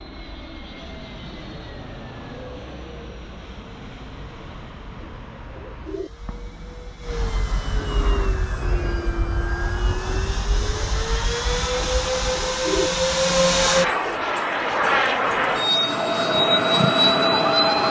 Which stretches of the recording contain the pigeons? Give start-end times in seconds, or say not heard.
5.0-6.1, 11.8-12.9.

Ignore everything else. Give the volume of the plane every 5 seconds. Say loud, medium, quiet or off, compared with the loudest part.
quiet, medium, loud, loud.